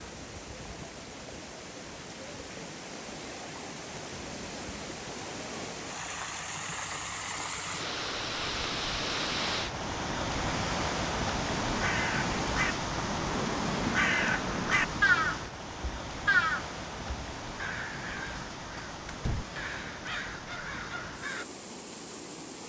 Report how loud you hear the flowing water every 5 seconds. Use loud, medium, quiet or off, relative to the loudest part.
medium, loud, loud, medium, medium.